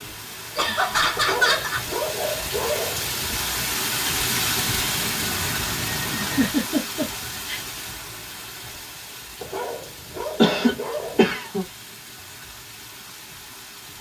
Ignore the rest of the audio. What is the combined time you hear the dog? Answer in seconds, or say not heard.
4 s.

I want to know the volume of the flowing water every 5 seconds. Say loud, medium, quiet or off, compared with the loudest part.
loud, loud, quiet.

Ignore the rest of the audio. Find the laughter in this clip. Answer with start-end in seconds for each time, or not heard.
0.6-1.8, 6.2-7.6, 10.4-11.7.